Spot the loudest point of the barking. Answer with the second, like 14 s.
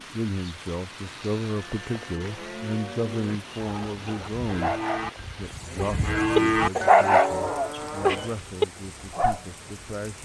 7 s.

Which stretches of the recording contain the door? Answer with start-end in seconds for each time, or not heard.
not heard.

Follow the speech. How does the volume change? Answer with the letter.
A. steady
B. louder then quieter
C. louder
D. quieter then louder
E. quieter
E.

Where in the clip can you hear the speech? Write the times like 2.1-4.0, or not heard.
0.0-4.8, 5.3-10.1.